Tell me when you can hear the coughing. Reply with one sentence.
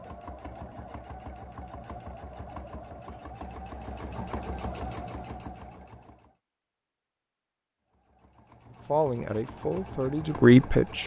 The coughing can't be heard in this clip.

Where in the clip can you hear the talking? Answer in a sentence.
You can hear the talking from 8.8 to 11.0 s.